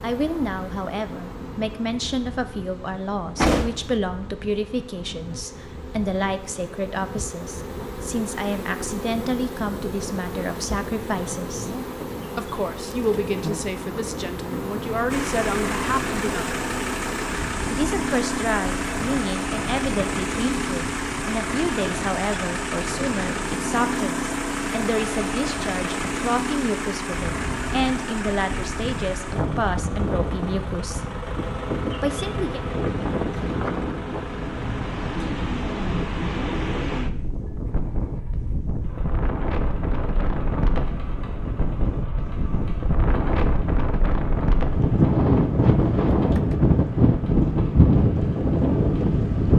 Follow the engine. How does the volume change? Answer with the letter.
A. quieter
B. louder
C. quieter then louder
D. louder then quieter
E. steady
A.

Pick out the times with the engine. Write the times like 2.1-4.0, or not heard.
15.1-49.5.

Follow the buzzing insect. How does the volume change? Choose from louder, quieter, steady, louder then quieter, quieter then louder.
louder.